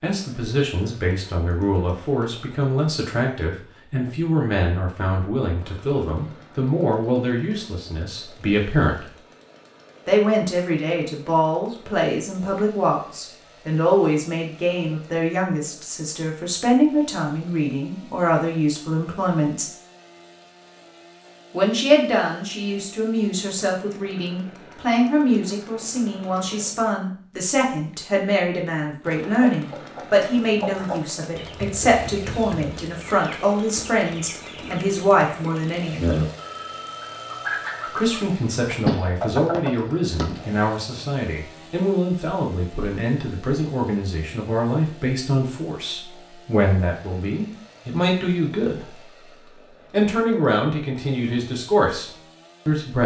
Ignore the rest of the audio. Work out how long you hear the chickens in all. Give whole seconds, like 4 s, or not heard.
11 s.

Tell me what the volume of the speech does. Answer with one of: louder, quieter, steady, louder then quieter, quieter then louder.
steady.